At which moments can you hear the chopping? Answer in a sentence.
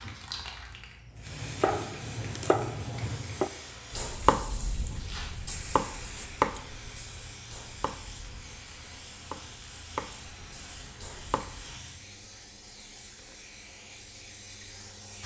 The chopping can be heard from 1.1 to 11.8 s.